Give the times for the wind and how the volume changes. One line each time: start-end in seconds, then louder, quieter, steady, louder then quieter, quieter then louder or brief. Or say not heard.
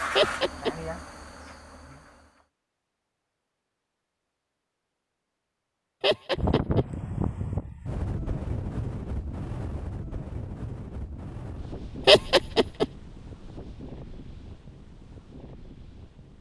6.3-16.3 quieter.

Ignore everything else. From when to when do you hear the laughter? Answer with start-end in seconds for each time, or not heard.
0.1-0.7, 6.0-6.8, 12.1-12.8.